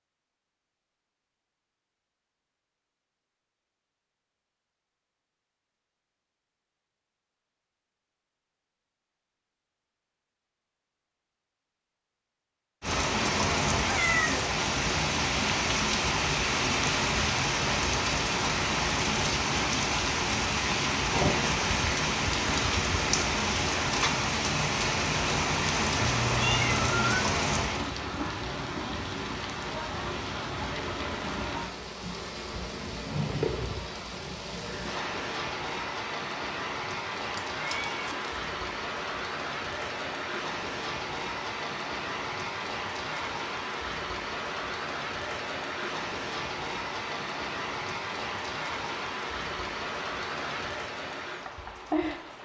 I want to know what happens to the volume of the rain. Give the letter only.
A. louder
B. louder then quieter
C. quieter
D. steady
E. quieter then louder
C.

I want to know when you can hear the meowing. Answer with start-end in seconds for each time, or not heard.
13.8-14.4, 25.9-27.2, 37.3-38.2.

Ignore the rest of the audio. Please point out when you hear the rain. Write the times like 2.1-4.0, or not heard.
12.8-52.3.